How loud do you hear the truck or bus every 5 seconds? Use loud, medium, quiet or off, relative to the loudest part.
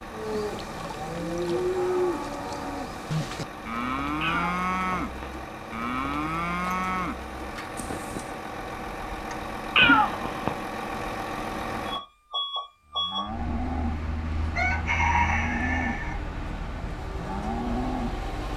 medium, loud, loud, loud.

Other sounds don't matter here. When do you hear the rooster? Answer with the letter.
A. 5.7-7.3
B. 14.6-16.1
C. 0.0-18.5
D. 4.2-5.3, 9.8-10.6
B.